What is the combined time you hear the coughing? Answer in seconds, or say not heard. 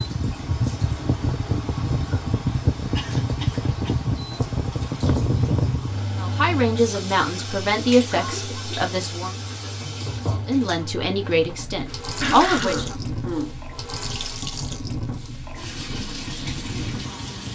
3 s.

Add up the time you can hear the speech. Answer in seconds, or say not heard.
6 s.